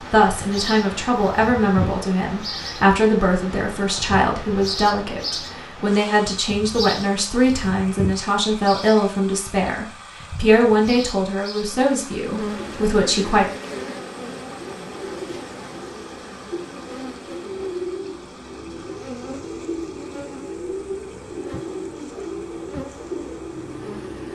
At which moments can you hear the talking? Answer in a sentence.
You can hear the talking from 0.0 to 13.4 s.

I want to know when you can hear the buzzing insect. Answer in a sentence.
You can hear the buzzing insect from 11.7 to 24.3 s.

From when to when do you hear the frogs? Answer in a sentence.
The frogs can't be heard in this clip.